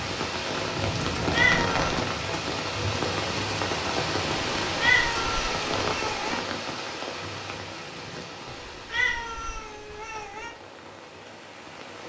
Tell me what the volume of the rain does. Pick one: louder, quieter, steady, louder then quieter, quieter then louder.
quieter.